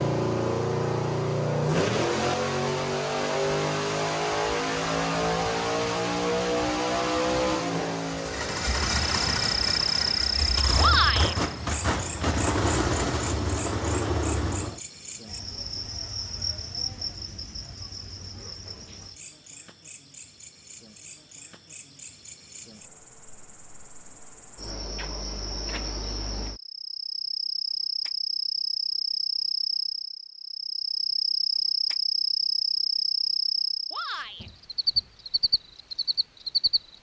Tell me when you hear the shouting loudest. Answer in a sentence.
The loudest moment of the shouting is at 11 seconds.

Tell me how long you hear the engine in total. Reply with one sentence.
The engine can be heard for 15 seconds in total.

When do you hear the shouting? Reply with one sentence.
The shouting can be heard from 10.8 to 11.3 s and from 33.9 to 34.5 s.